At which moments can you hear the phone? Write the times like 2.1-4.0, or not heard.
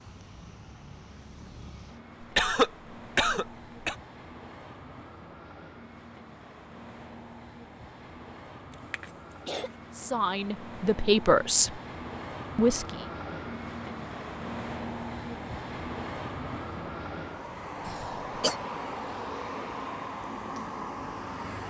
not heard.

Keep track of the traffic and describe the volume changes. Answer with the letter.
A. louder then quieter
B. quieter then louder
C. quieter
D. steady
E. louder
E.